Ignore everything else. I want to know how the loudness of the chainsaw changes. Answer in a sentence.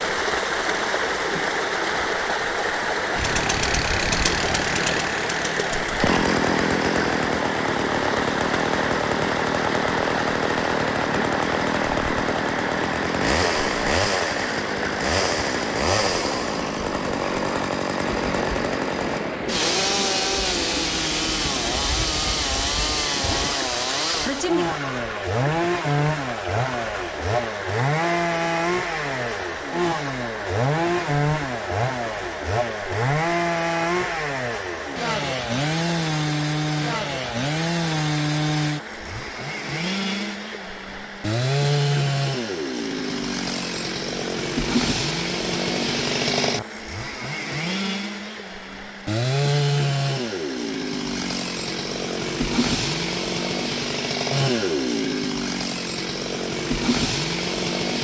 The loudness of the chainsaw stays about the same.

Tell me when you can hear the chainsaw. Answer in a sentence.
You can hear the chainsaw from 3.1 to 57.9 s.